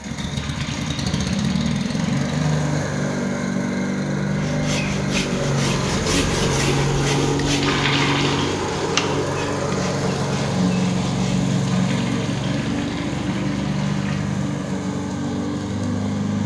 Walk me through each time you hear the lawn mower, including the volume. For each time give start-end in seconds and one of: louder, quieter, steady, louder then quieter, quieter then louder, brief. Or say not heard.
0.0-16.4 steady.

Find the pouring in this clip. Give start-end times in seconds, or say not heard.
0.3-2.8, 7.6-8.5, 11.7-14.2.